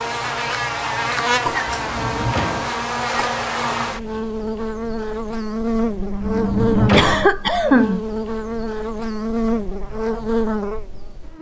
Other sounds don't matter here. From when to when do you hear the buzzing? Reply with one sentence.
You can hear the buzzing from 0.0 to 11.3 s.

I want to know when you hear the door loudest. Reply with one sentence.
The loudest moment of the door is at 7 seconds.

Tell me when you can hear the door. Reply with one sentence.
You can hear the door from 1.6 to 2.7 s and from 6.2 to 7.2 s.